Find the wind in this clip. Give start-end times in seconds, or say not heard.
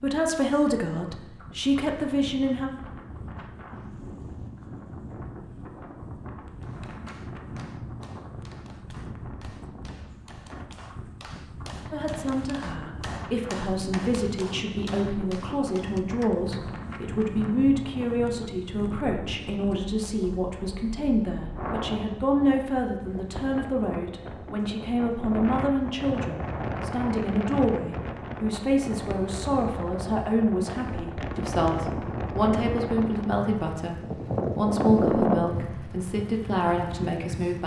0.0-37.6.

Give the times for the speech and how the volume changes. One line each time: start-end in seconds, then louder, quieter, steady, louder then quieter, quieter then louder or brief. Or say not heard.
0.0-2.7 brief
11.9-37.6 steady.